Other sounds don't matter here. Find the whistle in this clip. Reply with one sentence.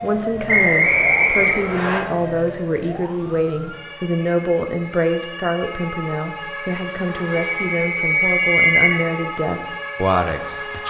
The whistle can be heard from 0.5 to 2.0 s and from 7.3 to 8.8 s.